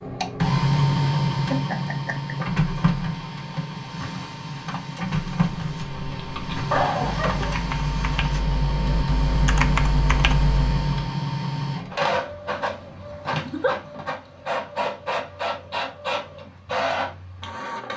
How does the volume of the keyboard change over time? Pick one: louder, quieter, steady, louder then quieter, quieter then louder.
louder.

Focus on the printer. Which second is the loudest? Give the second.
1 s.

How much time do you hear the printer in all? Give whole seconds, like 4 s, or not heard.
18 s.